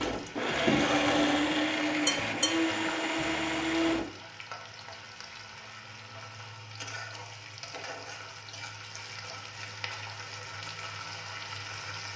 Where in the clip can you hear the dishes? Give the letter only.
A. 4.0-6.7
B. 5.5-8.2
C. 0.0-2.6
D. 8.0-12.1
C.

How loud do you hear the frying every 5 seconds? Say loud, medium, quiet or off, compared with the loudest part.
medium, loud, loud.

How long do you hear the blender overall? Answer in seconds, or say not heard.
4 s.